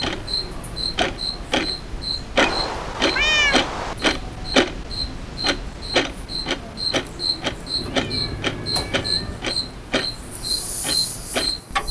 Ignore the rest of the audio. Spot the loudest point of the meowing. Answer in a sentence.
The volume of the meowing peaks at 3 seconds.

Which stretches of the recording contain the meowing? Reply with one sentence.
You can hear the meowing from 2.4 to 4.0 s and from 7.8 to 9.4 s.